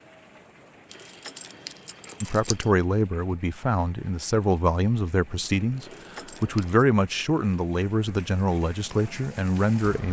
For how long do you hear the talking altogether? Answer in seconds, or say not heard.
8 s.